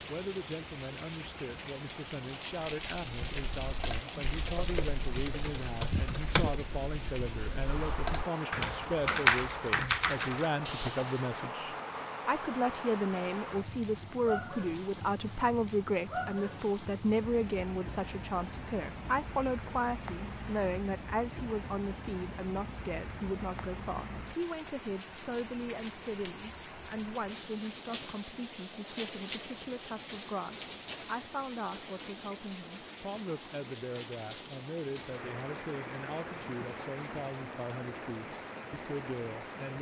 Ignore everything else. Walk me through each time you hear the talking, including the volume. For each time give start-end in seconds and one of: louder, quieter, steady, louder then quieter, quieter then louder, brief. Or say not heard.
0.1-39.7 louder then quieter.